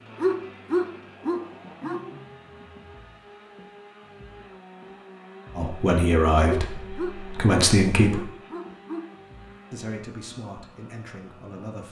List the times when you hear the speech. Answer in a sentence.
You can hear the speech from 5.5 to 8.2 s and from 9.7 to 11.8 s.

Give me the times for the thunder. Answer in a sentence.
You can't hear the thunder here.